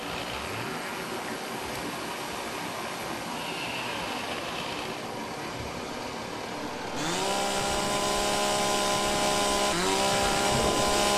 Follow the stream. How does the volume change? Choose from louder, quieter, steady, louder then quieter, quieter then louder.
steady.